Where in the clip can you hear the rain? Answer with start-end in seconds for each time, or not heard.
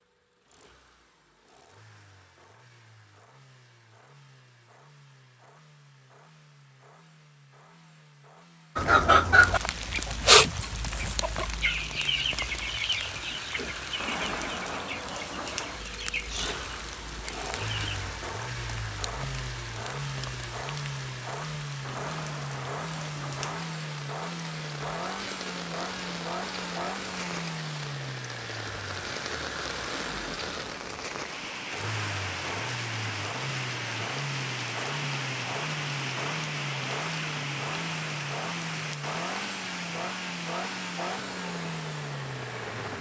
9.3-42.9.